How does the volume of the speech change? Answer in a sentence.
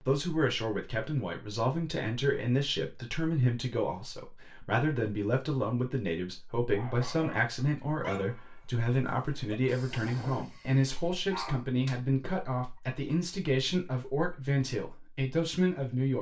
The loudness of the speech stays about the same.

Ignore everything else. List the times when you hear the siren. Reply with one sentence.
You can't hear the siren here.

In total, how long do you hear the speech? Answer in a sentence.
You can hear the speech for 16 seconds altogether.